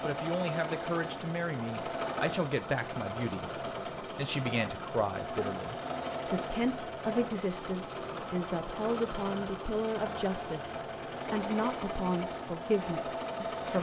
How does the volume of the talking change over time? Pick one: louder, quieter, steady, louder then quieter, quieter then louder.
steady.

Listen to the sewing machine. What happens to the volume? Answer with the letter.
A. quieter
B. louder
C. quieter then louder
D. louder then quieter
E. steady
E.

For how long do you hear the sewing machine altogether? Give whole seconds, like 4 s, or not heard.
14 s.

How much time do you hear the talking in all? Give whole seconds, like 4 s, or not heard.
14 s.